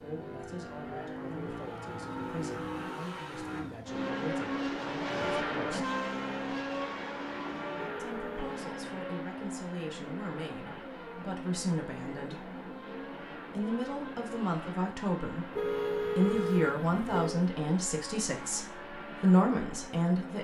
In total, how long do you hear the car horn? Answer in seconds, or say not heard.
3 s.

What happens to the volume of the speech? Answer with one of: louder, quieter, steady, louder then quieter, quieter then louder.
louder.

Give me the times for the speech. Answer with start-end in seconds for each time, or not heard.
0.0-5.9, 8.0-12.5, 13.6-20.3.